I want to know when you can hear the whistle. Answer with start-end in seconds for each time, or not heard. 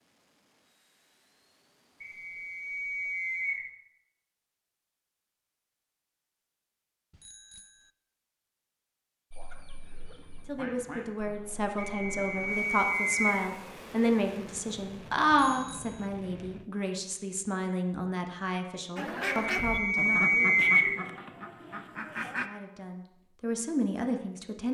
2.0-3.6, 11.8-13.4, 19.5-20.9.